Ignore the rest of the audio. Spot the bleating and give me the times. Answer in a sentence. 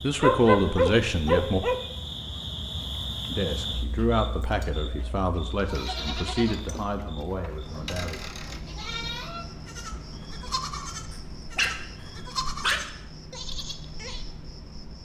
You can hear the bleating from 5.3 to 14.2 s.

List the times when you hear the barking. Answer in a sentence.
You can hear the barking from 0.2 to 1.8 s and from 11.1 to 12.8 s.